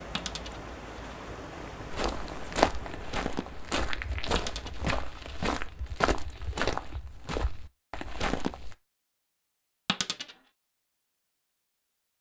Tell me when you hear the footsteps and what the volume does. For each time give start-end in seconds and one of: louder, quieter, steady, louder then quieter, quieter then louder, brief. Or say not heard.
1.9-8.8 quieter.